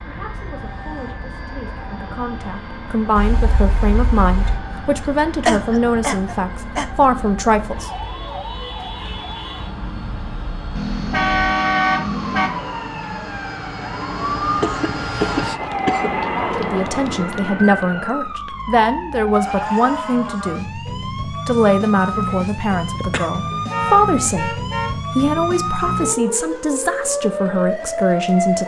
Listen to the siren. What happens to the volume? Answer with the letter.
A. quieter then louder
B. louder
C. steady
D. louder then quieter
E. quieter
B.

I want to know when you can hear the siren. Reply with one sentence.
You can hear the siren from 0.0 to 28.6 s.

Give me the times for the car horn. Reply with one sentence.
The car horn can be heard from 3.1 to 4.6 s, from 10.8 to 12.5 s and from 23.7 to 25.0 s.